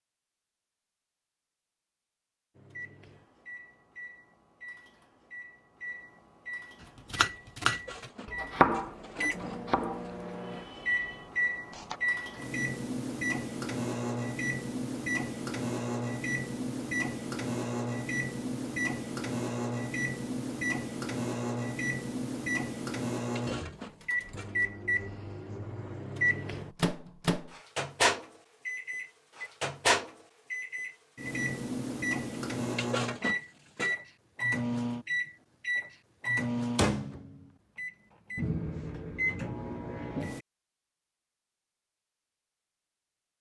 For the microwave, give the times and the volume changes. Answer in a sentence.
You can hear the microwave from 2.5 to 40.4 s, getting louder.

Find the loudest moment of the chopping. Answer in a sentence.
The volume of the chopping peaks at 9 seconds.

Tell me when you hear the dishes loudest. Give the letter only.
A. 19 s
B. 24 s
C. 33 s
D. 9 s
C.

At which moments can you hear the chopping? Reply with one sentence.
The chopping can be heard from 7.1 to 12.0 s.